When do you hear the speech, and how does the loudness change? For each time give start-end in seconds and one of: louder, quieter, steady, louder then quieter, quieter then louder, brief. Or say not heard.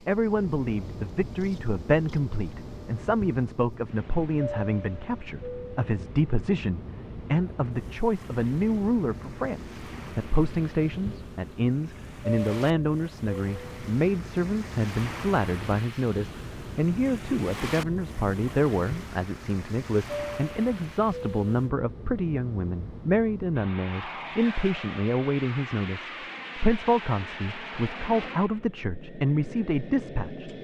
0.1-30.6 steady.